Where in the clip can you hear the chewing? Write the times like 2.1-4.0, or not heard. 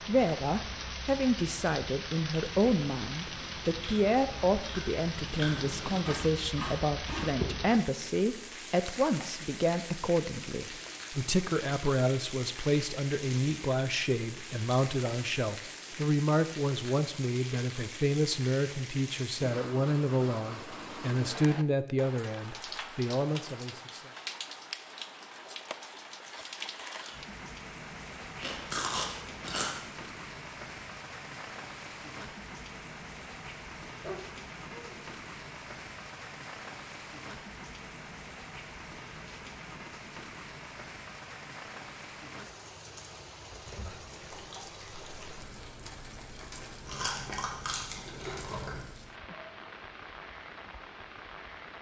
2.5-7.6, 28.2-29.9, 43.6-48.8.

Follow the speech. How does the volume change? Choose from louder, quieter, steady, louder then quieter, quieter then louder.
steady.